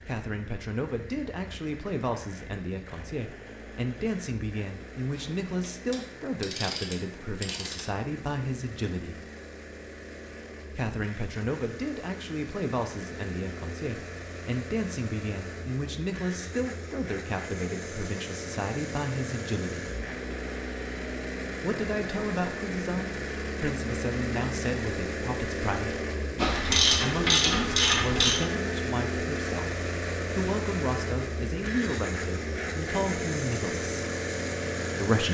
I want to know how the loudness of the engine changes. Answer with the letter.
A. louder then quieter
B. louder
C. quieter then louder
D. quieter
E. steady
B.